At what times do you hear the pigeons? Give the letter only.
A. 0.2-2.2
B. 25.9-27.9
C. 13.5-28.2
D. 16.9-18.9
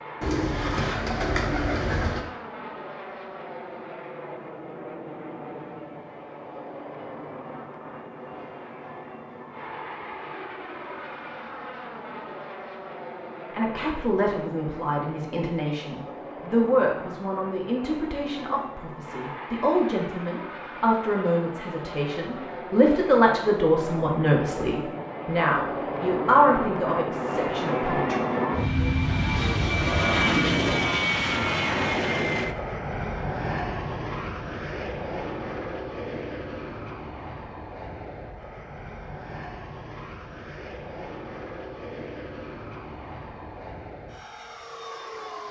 A.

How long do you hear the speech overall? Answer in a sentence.
You can hear the speech for 15 seconds altogether.